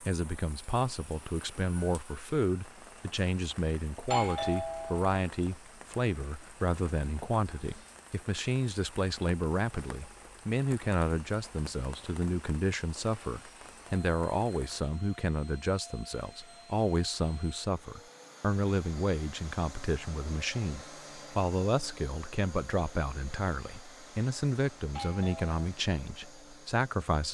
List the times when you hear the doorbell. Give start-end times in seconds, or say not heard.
4.0-5.1, 24.9-25.6.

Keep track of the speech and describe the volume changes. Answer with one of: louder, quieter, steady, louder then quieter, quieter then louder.
steady.